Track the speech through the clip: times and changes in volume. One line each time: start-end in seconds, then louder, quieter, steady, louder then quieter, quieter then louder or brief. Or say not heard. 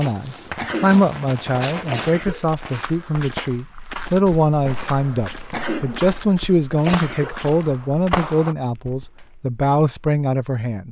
0.0-10.8 steady.